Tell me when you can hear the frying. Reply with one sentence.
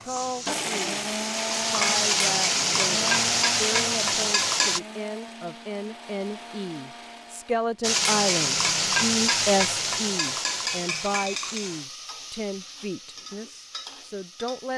The frying can be heard from 0.0 to 4.8 s and from 7.8 to 14.7 s.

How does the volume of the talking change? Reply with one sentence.
The volume of the talking goes up, then down.